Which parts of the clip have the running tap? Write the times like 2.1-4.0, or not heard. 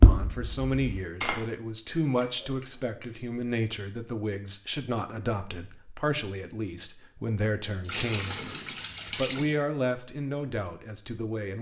7.8-9.6.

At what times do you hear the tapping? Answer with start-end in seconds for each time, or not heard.
0.0-3.0.